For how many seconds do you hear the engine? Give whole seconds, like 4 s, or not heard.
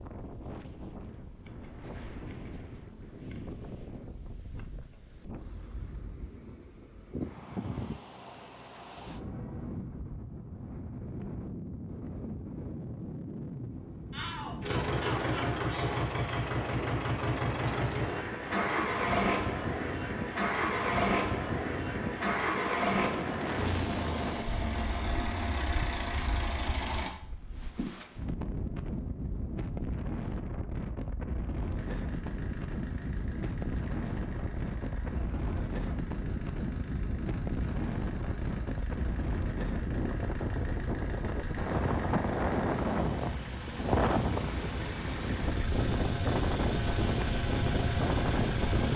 30 s.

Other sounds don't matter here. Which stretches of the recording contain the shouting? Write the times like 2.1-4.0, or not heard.
14.1-15.9.